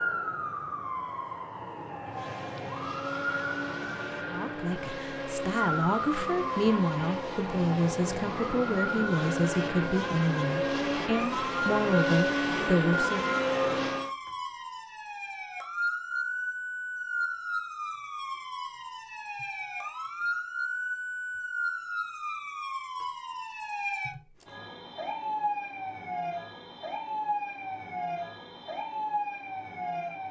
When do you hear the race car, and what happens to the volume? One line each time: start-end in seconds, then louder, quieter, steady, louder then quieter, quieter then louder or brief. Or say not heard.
2.0-14.1 louder.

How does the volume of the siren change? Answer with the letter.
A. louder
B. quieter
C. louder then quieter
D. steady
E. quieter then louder
D.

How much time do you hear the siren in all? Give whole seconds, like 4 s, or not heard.
30 s.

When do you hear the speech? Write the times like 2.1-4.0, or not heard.
4.3-13.3.